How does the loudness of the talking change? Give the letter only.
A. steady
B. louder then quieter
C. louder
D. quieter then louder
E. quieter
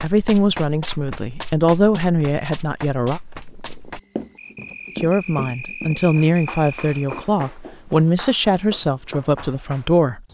A.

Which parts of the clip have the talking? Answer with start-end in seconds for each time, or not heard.
0.0-3.2, 5.0-10.2.